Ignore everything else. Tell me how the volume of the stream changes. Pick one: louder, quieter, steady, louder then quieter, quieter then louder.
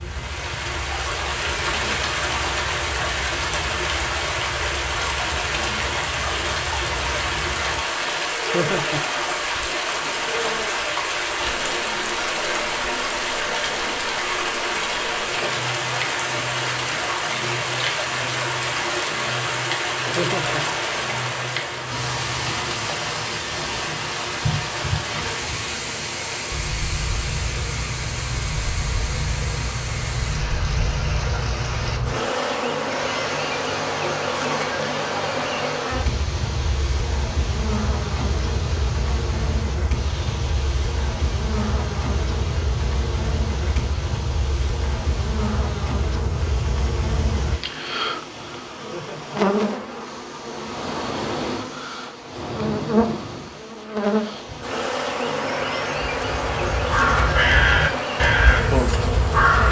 quieter.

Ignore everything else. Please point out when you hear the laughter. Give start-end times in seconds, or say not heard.
8.5-9.0, 20.1-20.6, 48.9-49.4.